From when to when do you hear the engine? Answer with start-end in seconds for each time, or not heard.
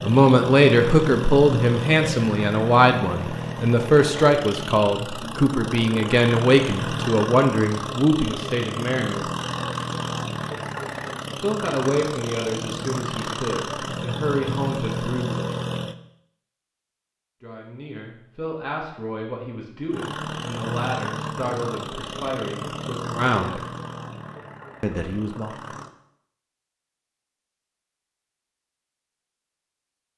0.0-15.9, 19.9-25.9.